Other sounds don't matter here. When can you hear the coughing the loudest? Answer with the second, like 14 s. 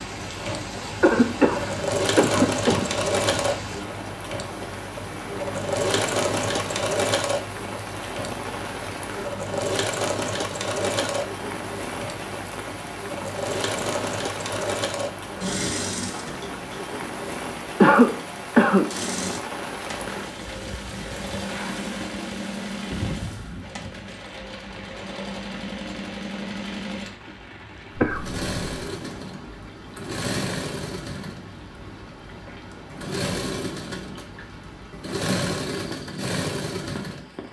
18 s.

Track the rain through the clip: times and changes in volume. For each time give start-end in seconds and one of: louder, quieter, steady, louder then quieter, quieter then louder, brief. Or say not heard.
0.0-37.4 quieter.